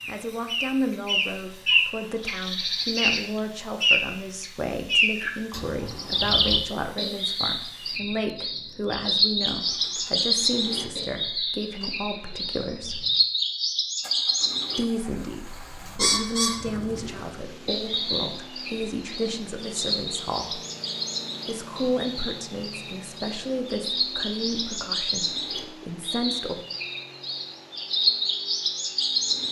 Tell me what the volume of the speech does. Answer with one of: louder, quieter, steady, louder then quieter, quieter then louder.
steady.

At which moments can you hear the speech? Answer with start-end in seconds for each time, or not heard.
0.1-13.1, 14.8-20.6, 21.4-26.6.